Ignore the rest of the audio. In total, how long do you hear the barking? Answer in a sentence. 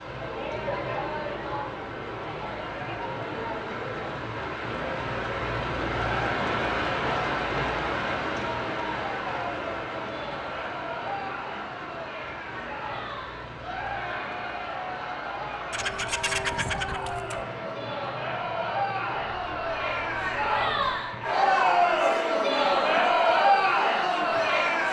You can't hear the barking here.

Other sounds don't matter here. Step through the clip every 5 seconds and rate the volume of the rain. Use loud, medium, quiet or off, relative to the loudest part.
medium, loud, medium, medium, medium.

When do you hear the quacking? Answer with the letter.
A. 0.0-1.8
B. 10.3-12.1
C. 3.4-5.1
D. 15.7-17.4
D.